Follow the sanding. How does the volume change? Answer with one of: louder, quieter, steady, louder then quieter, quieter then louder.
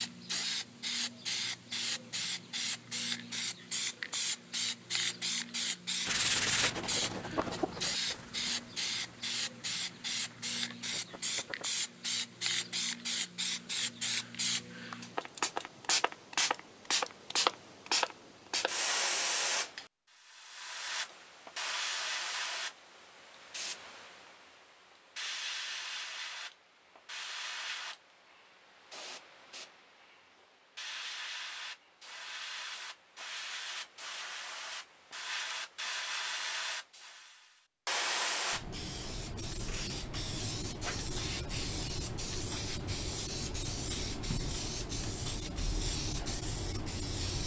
quieter.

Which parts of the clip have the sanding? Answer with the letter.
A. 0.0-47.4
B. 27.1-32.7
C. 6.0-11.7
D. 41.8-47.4
C.